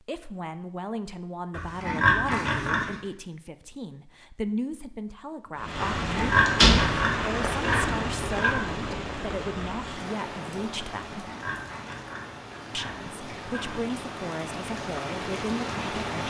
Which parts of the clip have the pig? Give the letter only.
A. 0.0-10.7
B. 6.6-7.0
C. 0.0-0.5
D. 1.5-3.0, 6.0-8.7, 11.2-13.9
D.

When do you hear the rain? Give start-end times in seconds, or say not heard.
5.5-16.2.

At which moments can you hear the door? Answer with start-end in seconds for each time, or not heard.
6.6-7.0.